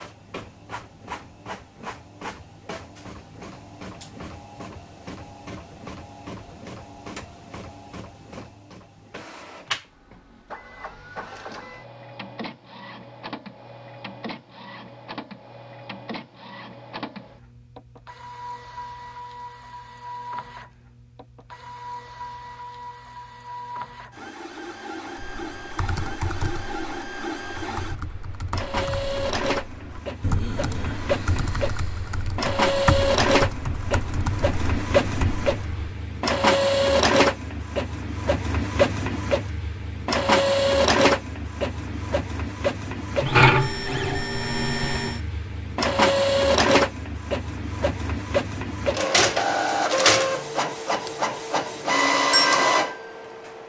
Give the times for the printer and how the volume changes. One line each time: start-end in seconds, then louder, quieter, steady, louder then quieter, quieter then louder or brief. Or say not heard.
0.0-53.6 louder.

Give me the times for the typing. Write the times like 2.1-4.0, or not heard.
25.1-35.9.